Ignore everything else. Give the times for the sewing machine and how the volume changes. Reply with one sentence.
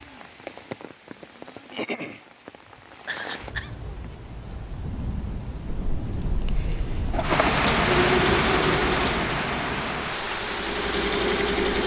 The sewing machine can be heard from 7.1 to 11.8 s, getting quieter then louder.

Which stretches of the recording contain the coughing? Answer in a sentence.
The coughing can be heard from 3.0 to 3.8 s.